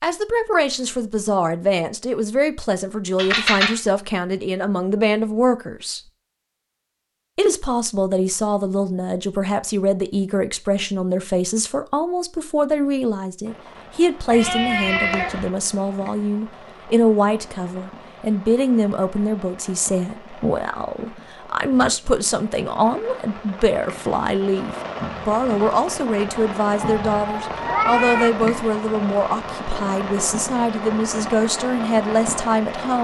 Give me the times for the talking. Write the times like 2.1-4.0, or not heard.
0.0-6.0, 7.3-32.9.